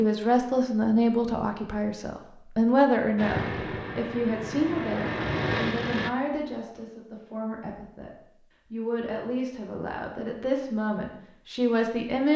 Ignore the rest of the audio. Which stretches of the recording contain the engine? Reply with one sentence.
You can hear the engine from 3.1 to 6.1 s.